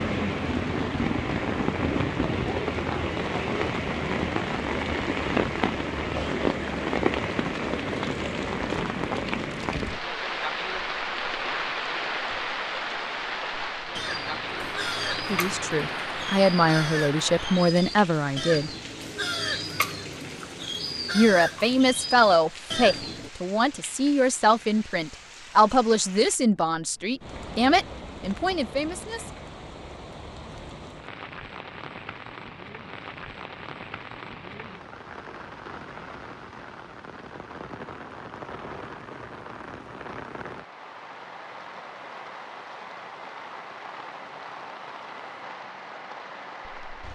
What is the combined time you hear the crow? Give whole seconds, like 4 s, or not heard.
9 s.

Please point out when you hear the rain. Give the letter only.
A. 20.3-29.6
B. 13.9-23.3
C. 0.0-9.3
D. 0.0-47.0
D.